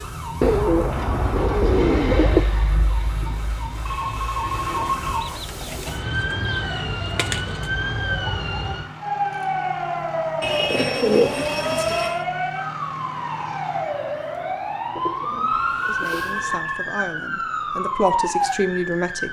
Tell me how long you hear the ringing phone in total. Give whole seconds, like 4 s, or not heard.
3 s.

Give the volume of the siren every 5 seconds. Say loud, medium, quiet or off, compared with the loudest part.
medium, loud, loud, loud.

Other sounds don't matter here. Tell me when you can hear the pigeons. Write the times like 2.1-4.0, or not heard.
0.4-2.5, 5.2-7.7, 10.4-12.2, 14.9-16.6.